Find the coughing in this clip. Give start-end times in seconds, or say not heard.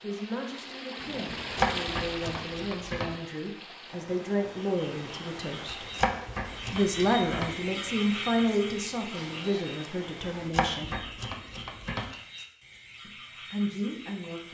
not heard.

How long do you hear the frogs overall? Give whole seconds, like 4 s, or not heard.
10 s.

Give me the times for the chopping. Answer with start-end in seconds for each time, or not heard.
1.5-3.1, 5.7-7.5, 10.4-12.1.